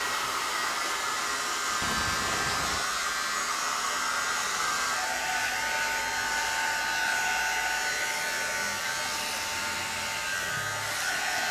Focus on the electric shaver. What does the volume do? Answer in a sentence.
The loudness of the electric shaver stays about the same.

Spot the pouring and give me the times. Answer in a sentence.
The pouring can be heard from 1.8 to 2.9 s.